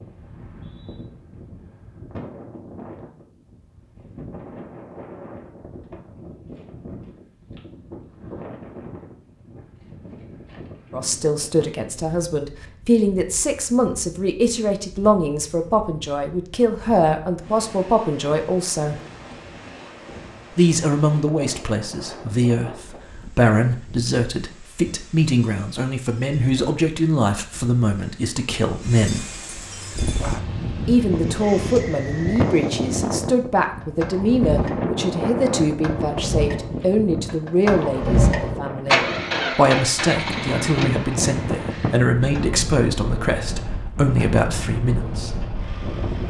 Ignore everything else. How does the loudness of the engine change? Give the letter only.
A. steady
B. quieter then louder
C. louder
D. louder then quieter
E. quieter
D.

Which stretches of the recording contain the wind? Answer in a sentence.
The wind can be heard from 0.0 to 46.2 s.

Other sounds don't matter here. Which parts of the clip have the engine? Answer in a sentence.
The engine can be heard from 29.6 to 46.2 s.